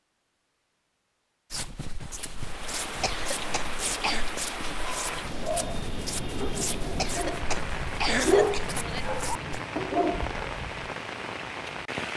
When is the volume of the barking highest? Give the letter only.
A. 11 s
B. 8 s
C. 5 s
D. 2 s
B.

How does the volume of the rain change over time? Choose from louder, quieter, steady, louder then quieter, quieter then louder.
steady.